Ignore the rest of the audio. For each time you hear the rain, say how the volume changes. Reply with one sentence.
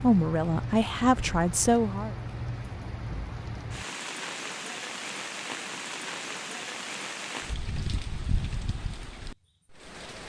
The rain can be heard from 0.0 to 10.2 s, at a steady volume.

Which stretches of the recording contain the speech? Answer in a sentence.
You can hear the speech from 0.0 to 2.1 s.